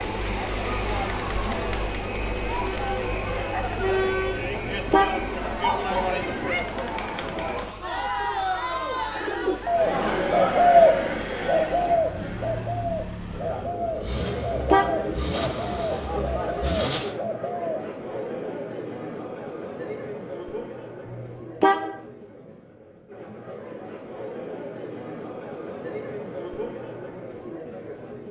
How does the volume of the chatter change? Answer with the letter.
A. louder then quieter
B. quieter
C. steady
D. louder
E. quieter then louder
B.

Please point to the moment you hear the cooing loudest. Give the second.
11 s.